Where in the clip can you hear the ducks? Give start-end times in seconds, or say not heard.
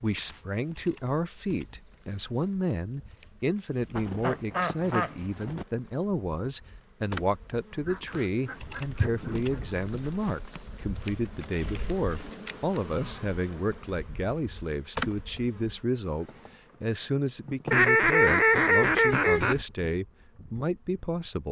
4.0-5.7, 7.8-9.8, 17.7-19.6.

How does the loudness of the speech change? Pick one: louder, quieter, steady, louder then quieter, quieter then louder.
steady.